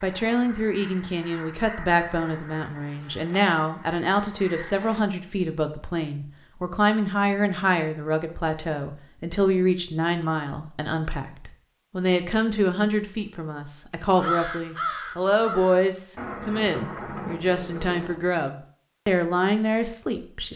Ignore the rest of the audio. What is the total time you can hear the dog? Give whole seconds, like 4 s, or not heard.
not heard.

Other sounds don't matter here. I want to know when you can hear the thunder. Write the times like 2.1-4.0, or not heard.
16.1-18.2.